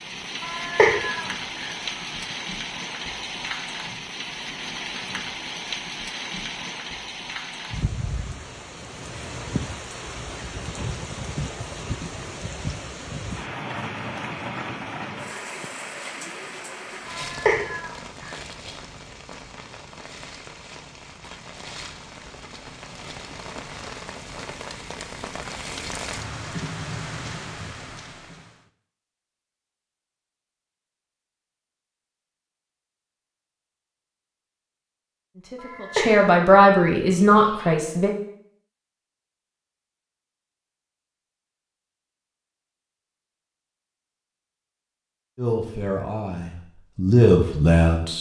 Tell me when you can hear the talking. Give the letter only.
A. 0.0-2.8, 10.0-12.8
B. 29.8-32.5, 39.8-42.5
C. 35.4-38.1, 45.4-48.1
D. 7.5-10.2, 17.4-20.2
C.